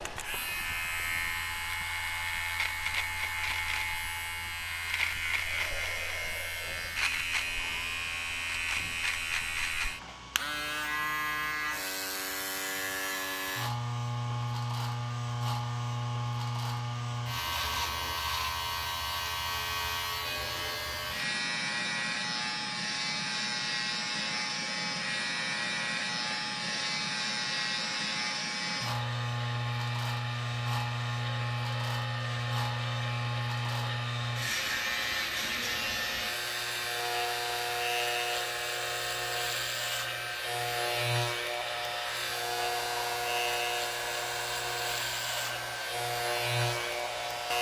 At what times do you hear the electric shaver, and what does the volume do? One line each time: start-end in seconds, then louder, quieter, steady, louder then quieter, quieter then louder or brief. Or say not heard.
0.0-47.5 steady.